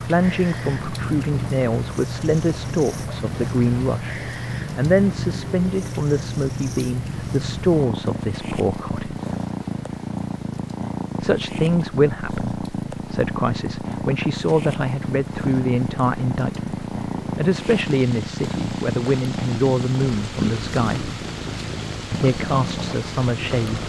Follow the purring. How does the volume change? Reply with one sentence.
The volume of the purring stays about the same.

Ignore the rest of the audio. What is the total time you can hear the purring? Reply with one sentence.
The purring can be heard for 24 seconds in total.